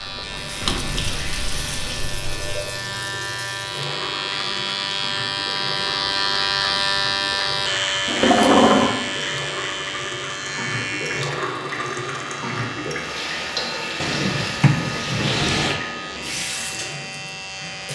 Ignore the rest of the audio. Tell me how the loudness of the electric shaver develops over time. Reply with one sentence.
The volume of the electric shaver goes up, then down.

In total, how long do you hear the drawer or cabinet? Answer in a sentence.
The drawer or cabinet can be heard for 5 seconds in total.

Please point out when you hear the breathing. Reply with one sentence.
You can't hear the breathing here.